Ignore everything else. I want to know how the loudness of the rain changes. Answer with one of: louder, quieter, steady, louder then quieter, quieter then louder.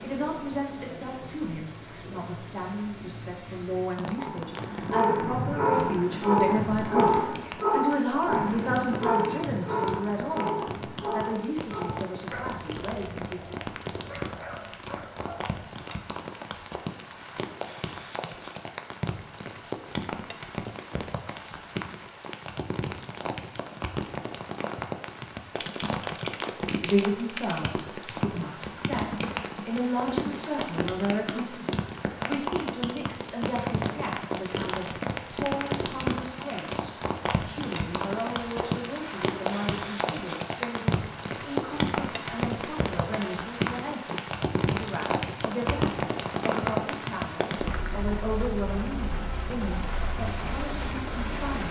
louder.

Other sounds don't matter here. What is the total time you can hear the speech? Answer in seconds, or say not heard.
38 s.